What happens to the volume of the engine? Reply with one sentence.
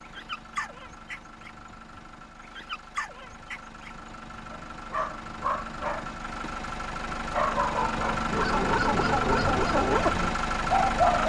The volume of the engine goes up.